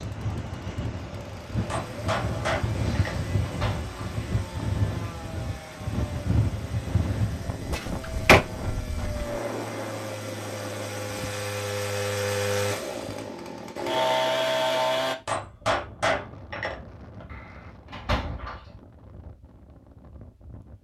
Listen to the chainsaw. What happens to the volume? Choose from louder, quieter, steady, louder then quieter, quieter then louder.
louder.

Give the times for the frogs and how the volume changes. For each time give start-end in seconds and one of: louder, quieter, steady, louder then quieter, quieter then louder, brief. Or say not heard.
not heard.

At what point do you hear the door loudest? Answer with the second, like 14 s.
8 s.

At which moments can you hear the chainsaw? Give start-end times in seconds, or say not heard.
0.0-15.2.